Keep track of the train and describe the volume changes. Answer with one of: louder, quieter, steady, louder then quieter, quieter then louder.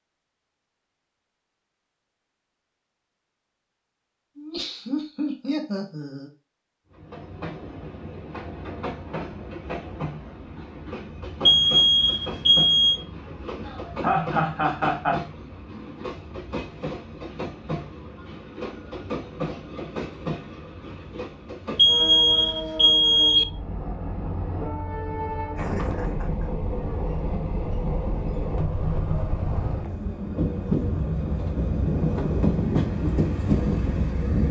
louder.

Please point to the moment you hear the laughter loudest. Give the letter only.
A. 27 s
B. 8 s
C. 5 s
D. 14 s
D.